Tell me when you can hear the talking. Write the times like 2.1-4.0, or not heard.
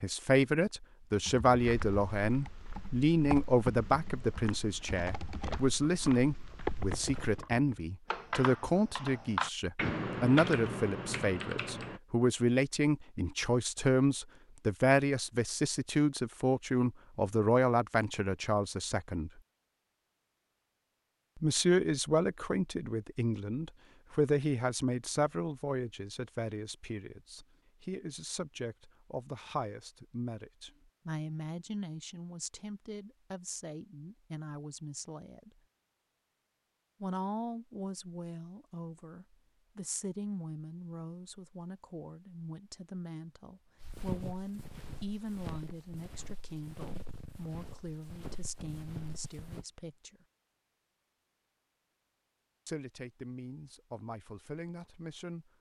0.0-19.3, 21.4-35.6, 37.0-50.1, 52.6-55.5.